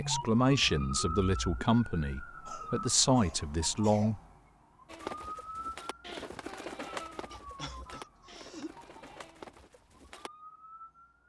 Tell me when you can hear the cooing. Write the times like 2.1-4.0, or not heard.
4.8-10.3.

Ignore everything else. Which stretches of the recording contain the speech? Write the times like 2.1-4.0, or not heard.
0.0-4.2.